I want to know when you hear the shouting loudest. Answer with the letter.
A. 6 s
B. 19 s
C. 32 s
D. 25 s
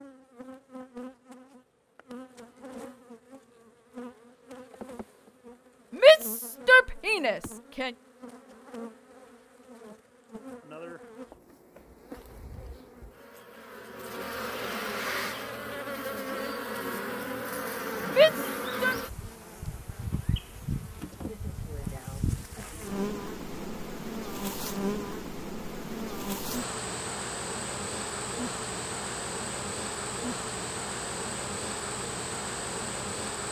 A.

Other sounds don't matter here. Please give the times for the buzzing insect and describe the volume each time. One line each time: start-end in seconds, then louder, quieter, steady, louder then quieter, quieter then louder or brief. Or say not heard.
0.0-33.4 louder.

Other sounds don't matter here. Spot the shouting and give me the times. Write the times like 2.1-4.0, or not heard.
6.0-7.9, 18.1-18.9.